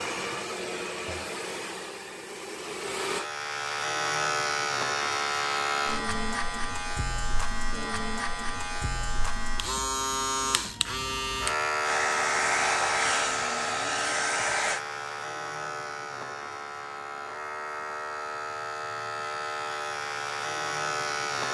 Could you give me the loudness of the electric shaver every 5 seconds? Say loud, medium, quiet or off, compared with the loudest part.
loud, loud, loud, medium, loud.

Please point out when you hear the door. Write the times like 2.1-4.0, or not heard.
not heard.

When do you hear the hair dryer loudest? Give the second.
13 s.